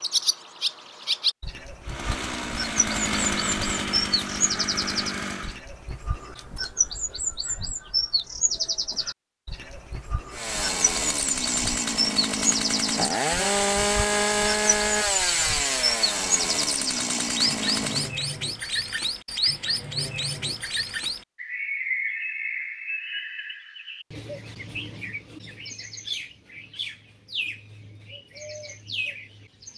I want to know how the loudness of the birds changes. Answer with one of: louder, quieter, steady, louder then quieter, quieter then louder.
quieter.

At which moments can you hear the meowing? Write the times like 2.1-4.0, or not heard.
not heard.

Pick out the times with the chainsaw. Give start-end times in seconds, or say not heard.
1.9-5.6, 10.3-18.1.